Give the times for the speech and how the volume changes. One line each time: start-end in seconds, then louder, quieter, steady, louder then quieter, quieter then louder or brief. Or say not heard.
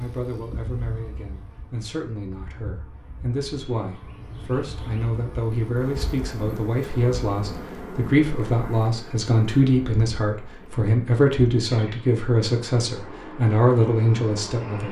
0.0-14.8 louder.